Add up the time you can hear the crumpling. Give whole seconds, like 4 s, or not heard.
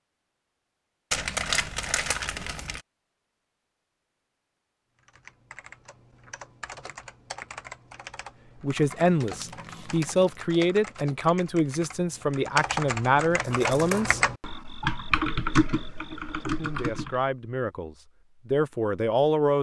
4 s.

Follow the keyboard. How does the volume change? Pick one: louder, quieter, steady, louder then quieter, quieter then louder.
louder.